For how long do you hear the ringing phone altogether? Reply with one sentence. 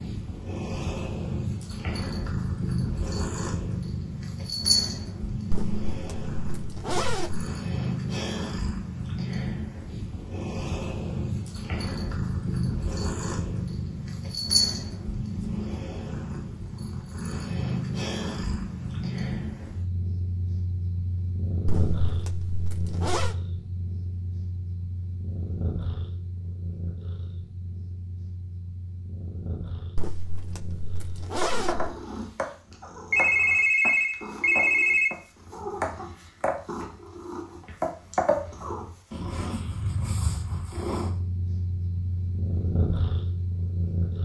You can hear the ringing phone for 2 seconds altogether.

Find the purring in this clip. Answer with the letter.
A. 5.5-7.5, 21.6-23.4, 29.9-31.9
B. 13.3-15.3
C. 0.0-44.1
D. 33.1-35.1
C.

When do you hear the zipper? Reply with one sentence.
You can hear the zipper from 5.5 to 7.5 s, from 21.6 to 23.4 s and from 29.9 to 31.9 s.